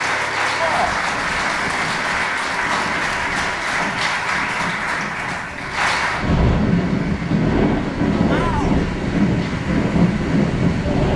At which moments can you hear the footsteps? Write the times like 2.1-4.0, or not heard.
not heard.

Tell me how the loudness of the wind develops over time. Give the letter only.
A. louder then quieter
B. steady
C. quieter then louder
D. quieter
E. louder
E.